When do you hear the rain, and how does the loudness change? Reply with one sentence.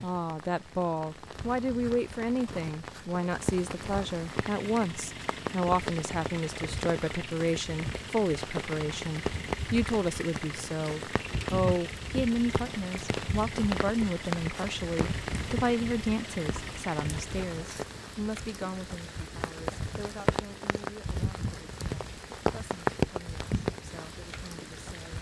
The rain can be heard from 0.0 to 25.1 s, getting louder.